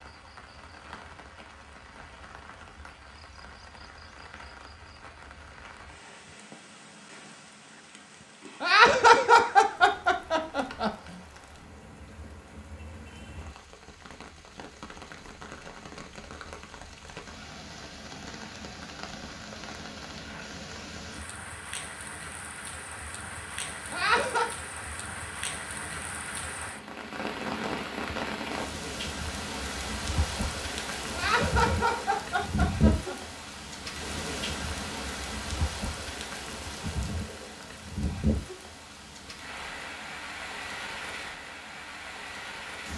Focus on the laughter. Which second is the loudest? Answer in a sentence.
The loudest moment of the laughter is at 9 seconds.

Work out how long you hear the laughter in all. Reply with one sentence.
The laughter can be heard for 5 seconds in total.